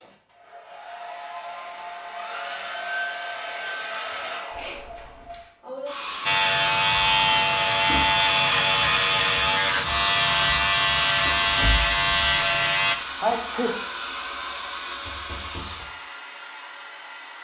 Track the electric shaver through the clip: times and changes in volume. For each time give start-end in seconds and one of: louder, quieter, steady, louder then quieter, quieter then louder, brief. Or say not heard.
6.2-12.9 steady.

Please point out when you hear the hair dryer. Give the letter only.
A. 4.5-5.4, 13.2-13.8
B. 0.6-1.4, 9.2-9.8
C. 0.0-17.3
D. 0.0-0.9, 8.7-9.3
C.